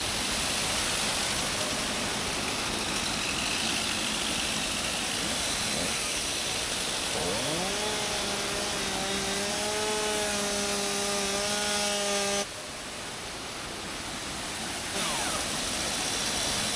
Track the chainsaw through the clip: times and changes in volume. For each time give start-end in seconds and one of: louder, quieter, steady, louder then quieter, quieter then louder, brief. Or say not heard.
0.0-12.4 louder
14.9-16.7 brief.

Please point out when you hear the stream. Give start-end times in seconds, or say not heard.
0.0-16.7.